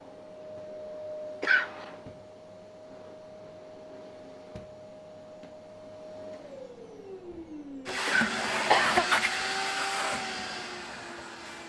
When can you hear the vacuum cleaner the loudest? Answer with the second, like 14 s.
9 s.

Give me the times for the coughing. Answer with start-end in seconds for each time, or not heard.
1.4-1.9, 8.1-9.1.